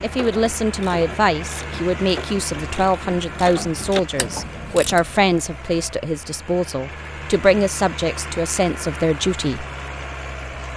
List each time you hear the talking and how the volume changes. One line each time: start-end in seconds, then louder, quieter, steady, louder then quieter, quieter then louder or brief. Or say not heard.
0.0-9.7 steady.